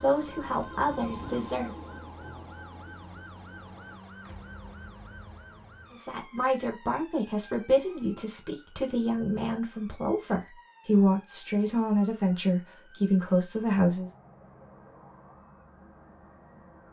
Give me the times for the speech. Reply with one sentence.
You can hear the speech from 0.0 to 1.7 s and from 5.9 to 14.1 s.